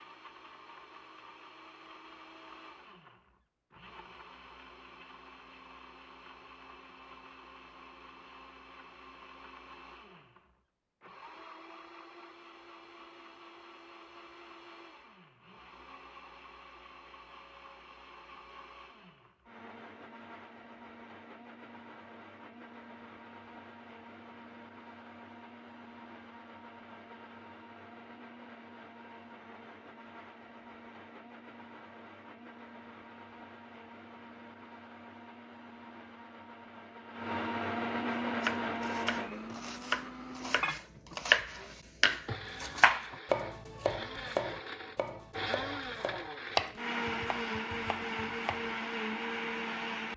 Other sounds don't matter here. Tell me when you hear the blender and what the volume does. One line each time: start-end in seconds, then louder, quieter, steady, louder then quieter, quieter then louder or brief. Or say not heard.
0.0-50.1 louder.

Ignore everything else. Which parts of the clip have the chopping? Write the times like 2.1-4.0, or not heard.
38.1-48.8.